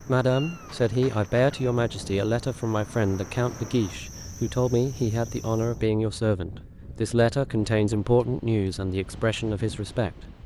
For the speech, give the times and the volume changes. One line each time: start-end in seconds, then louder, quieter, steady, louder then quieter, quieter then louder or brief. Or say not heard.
0.0-10.2 steady.